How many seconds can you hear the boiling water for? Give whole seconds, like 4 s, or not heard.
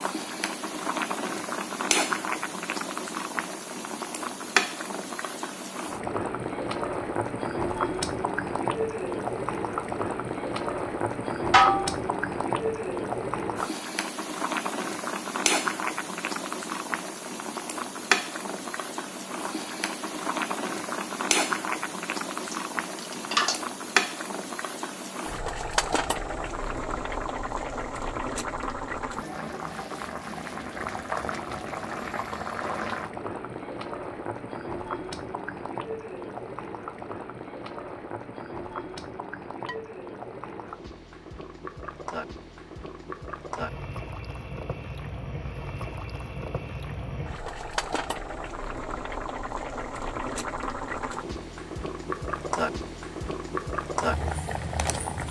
55 s.